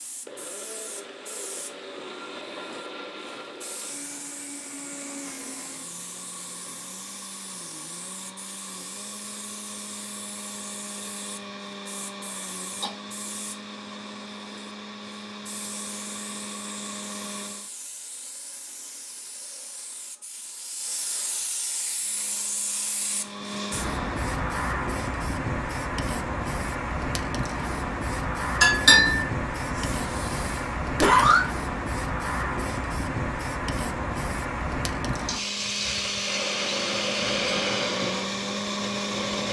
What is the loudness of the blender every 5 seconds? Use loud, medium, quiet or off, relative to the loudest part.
medium, medium, medium, medium, medium, off, off, loud.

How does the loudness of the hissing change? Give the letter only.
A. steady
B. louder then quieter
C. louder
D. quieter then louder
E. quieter
C.